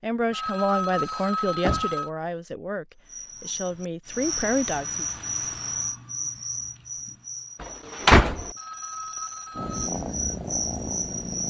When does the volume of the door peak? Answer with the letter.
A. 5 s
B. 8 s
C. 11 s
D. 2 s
B.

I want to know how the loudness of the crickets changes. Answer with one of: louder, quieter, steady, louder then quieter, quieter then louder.
quieter then louder.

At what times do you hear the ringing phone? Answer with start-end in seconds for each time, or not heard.
0.3-2.1, 8.6-9.9.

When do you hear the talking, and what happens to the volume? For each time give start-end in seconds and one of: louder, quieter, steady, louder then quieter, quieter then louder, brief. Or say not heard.
0.0-5.0 quieter then louder.